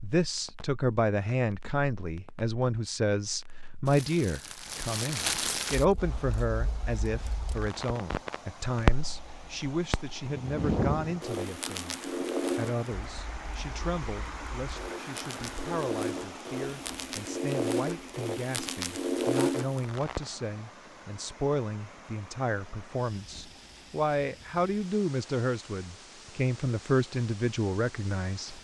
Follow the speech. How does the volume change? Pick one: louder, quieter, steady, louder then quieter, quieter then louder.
quieter then louder.